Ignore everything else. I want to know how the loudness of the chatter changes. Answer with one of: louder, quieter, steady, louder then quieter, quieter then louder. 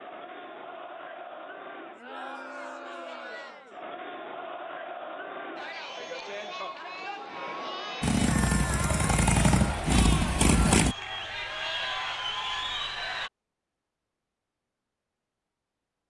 louder.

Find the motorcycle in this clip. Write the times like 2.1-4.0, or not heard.
8.0-10.9.